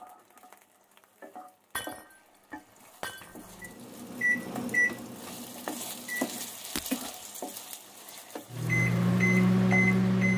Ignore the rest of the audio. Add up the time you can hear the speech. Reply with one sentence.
The speech can't be heard in this clip.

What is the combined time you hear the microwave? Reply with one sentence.
You can hear the microwave for 5 seconds altogether.